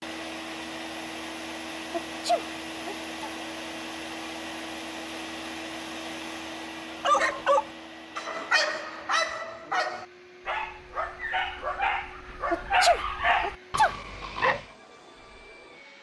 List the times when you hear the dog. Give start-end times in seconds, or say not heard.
7.0-14.7.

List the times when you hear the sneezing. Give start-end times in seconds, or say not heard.
1.9-3.3, 12.5-13.9.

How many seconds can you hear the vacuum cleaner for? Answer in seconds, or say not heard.
16 s.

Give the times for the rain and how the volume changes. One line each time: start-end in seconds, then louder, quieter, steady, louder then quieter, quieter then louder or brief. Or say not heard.
not heard.